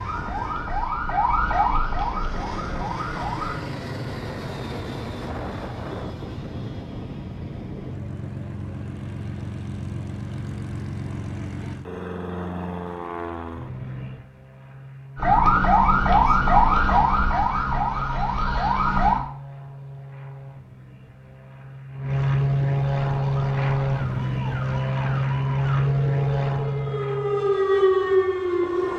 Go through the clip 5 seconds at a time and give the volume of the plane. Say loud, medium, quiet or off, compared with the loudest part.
medium, medium, medium, quiet, loud, loud.